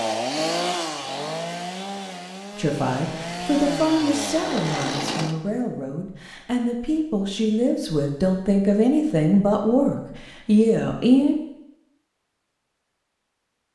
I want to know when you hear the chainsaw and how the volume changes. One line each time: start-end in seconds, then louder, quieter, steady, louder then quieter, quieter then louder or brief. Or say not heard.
0.0-5.3 quieter then louder.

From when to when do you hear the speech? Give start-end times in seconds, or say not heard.
2.5-11.3.